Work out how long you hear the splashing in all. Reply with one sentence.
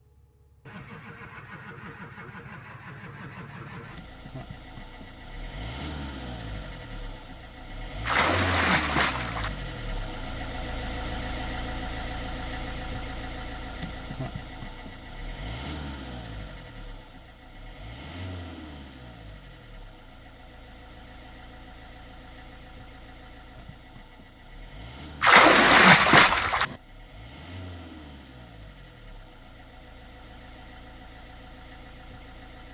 The splashing can be heard for 3 seconds in total.